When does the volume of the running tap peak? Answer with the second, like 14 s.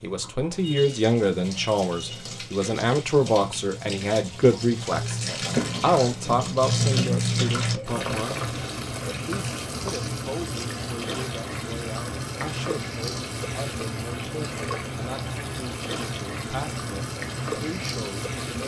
7 s.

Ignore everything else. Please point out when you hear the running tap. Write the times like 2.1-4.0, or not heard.
0.0-18.6.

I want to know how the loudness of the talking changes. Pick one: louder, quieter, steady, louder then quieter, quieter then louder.
quieter.